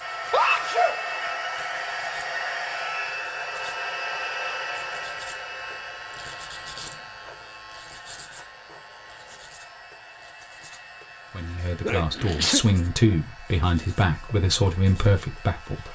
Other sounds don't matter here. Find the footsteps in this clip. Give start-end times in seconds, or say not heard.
not heard.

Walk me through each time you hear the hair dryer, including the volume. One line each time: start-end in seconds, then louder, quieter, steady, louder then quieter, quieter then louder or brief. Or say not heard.
0.0-15.8 quieter.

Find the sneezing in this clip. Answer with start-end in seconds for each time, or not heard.
0.2-1.0, 11.8-12.7.